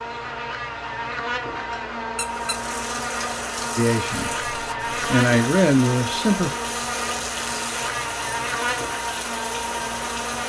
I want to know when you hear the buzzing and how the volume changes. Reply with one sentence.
You can hear the buzzing from 0.0 to 10.4 s, at a steady volume.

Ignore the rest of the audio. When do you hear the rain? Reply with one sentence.
The rain can be heard from 2.2 to 10.4 s.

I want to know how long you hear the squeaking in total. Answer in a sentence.
You can hear the squeaking for 2 seconds altogether.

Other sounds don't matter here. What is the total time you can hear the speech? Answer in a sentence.
The speech can be heard for 2 seconds in total.